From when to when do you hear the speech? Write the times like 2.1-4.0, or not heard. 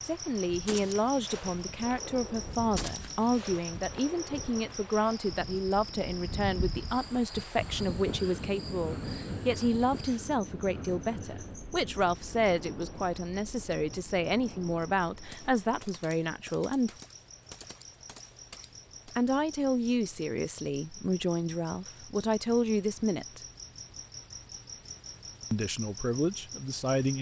0.0-16.9, 19.1-23.4, 25.5-27.1.